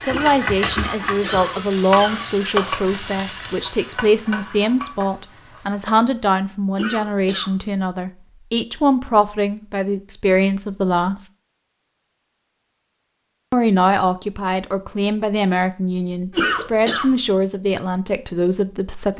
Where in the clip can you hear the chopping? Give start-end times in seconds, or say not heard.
not heard.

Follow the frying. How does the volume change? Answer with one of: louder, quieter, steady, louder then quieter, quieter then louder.
quieter.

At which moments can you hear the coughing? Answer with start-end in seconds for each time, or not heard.
0.1-2.5, 6.8-7.5, 16.4-17.1.